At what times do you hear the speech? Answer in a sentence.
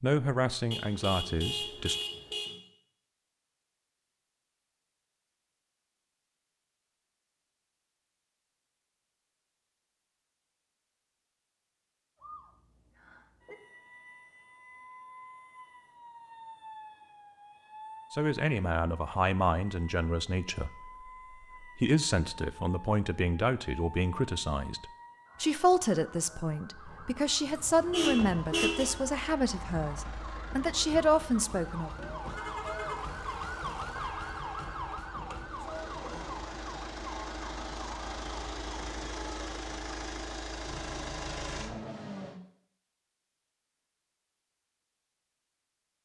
The speech can be heard from 0.0 to 2.0 s and from 18.1 to 31.9 s.